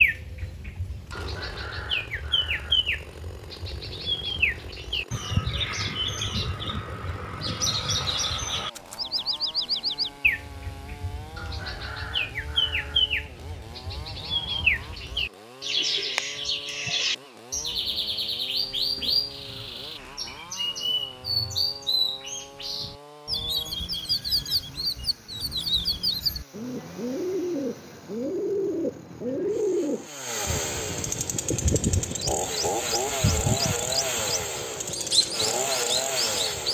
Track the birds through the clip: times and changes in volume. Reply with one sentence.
The birds can be heard from 0.0 to 36.6 s, at a steady volume.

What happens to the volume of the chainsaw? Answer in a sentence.
The volume of the chainsaw goes up.